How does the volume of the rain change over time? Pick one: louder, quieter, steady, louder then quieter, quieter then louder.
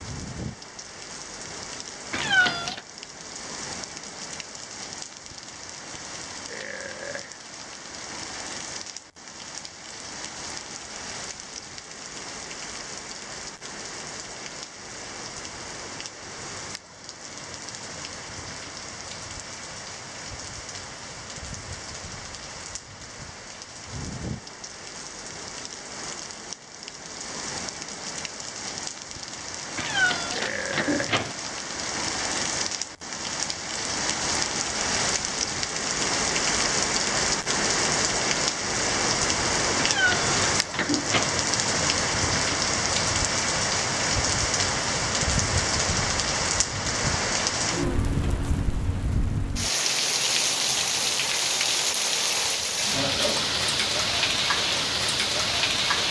louder.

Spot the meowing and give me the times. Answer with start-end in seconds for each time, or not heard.
2.1-2.8, 29.8-31.4, 39.8-41.3.